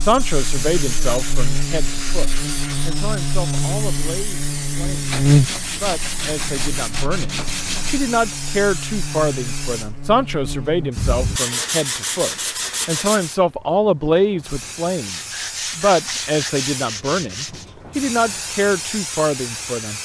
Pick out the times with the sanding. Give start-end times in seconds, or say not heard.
0.3-2.9, 5.0-8.0, 10.9-13.3, 15.0-17.6.